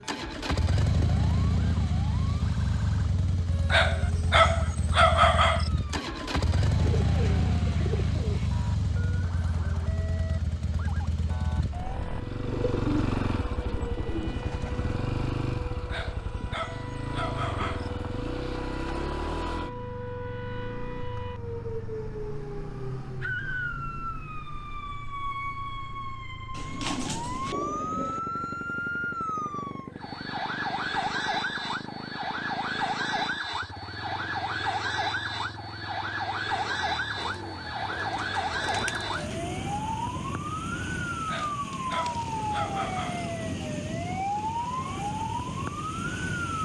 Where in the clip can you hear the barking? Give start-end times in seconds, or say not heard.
3.7-5.7, 15.9-17.9, 41.2-43.2.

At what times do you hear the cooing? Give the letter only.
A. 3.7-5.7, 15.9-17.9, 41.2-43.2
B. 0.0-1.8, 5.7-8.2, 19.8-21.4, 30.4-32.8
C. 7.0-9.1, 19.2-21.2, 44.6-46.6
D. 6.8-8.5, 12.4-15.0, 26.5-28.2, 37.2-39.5
D.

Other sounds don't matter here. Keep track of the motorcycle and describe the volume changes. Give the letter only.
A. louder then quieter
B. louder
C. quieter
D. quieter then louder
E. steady
C.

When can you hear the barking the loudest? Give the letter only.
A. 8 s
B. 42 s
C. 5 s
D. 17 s
C.